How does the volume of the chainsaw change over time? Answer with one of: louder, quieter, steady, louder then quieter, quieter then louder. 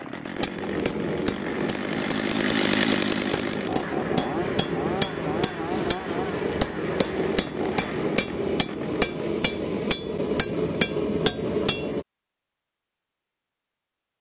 louder then quieter.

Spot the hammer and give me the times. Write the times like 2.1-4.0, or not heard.
0.3-12.1.